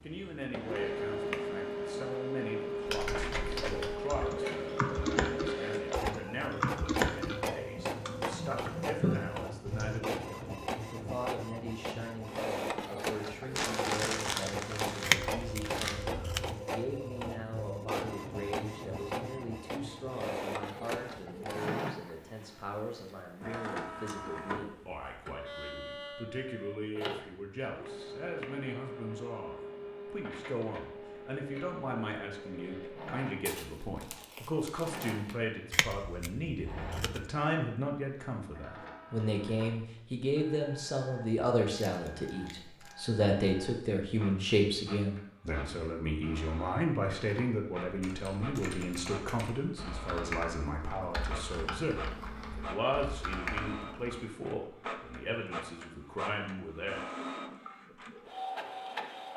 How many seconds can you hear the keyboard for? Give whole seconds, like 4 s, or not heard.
14 s.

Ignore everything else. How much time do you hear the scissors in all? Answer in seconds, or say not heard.
3 s.